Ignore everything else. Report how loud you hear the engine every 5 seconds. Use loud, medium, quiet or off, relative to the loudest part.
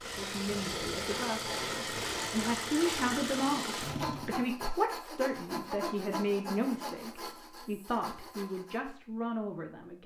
loud, off.